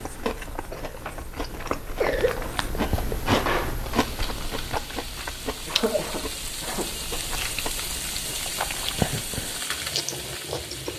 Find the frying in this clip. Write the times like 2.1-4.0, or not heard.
3.1-10.9.